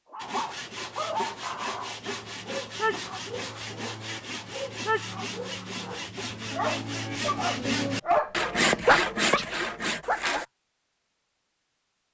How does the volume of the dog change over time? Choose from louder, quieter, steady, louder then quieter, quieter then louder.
louder.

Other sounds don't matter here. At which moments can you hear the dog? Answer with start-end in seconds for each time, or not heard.
0.1-10.4.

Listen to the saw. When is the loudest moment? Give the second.
9 s.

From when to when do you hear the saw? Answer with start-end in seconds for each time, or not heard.
0.2-10.4.